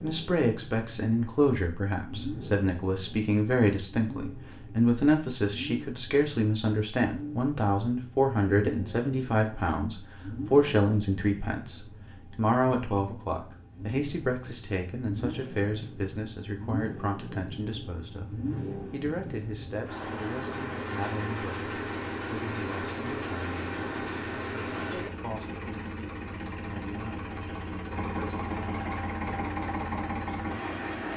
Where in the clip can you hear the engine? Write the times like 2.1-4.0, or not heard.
0.0-31.1.